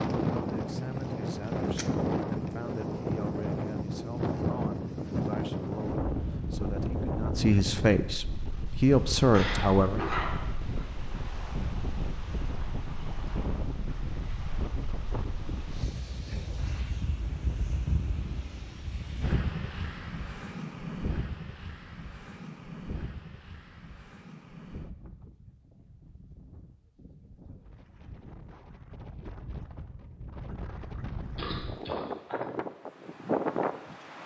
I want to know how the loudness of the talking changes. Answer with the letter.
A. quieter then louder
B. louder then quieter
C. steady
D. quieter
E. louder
E.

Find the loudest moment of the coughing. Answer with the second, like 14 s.
10 s.